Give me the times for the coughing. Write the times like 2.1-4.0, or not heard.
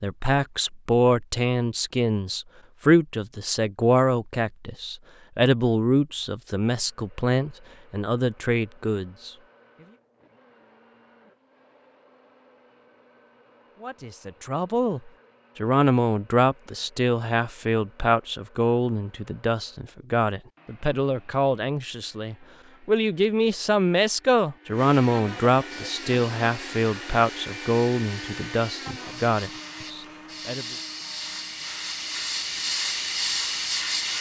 not heard.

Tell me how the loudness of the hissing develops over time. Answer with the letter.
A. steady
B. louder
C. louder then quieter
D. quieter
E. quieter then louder
B.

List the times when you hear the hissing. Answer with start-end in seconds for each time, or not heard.
25.7-34.1.